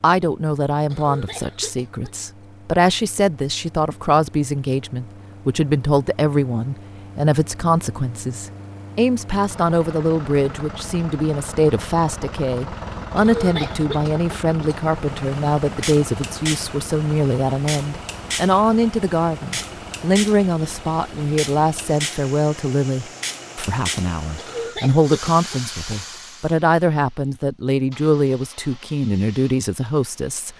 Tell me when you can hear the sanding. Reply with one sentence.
You can't hear the sanding here.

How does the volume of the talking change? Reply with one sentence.
The volume of the talking stays about the same.